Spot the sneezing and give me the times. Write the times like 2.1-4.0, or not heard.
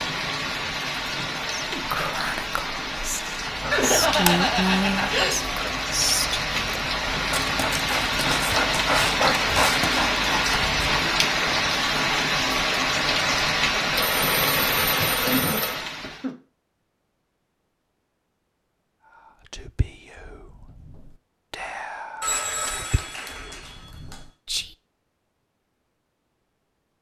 1.6-2.0, 14.9-16.4.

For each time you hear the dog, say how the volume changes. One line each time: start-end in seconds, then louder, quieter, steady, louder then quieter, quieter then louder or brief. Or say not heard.
3.4-11.1 quieter then louder.